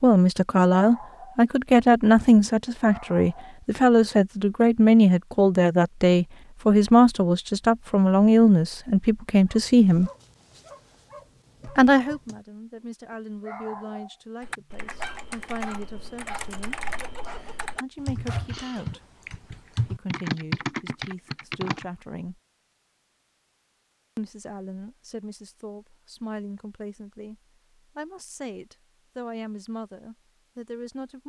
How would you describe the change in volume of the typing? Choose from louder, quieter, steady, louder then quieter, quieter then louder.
louder.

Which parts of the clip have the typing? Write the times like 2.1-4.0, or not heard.
14.4-21.9.